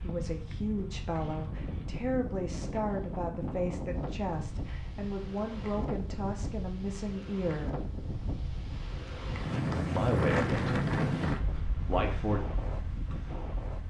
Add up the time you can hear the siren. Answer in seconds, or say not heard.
not heard.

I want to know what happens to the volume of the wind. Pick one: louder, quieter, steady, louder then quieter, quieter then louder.
louder.